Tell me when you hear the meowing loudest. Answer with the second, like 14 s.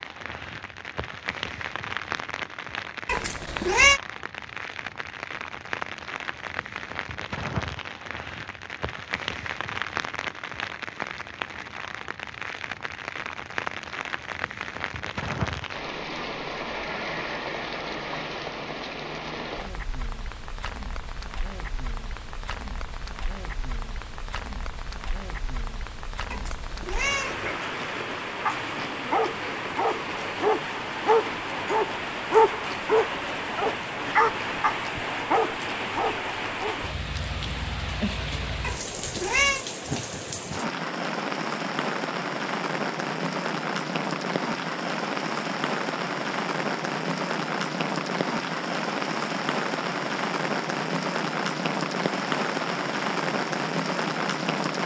4 s.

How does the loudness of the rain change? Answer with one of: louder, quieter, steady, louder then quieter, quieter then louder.
louder.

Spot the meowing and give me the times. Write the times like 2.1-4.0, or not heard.
3.0-4.0, 26.3-27.6, 38.6-39.6.